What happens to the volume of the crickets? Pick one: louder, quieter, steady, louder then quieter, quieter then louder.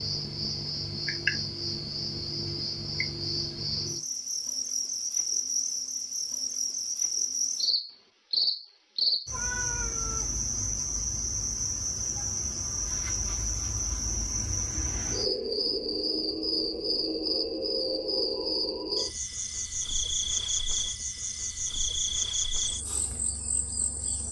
steady.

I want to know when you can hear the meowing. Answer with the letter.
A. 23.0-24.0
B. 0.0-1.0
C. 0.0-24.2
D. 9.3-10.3
D.